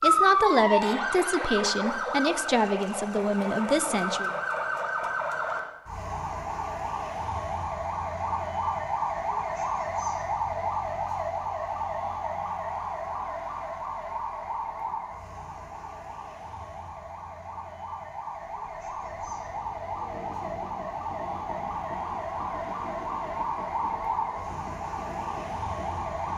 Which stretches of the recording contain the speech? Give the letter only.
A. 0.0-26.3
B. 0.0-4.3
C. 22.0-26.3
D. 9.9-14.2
B.